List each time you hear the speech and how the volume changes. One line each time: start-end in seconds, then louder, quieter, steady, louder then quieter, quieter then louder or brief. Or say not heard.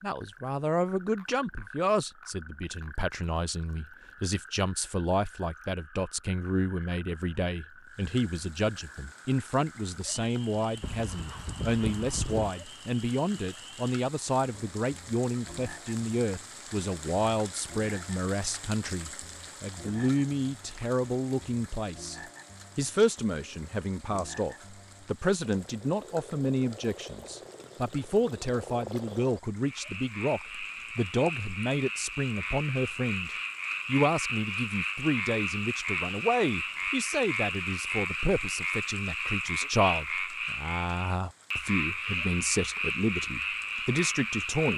0.0-22.1 steady
22.8-44.7 steady.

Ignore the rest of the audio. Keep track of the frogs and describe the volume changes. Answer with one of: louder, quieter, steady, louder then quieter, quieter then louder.
louder.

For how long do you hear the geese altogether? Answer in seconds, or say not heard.
2 s.